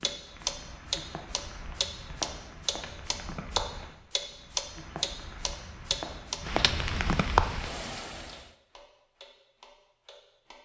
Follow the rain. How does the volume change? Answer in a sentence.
The loudness of the rain goes up.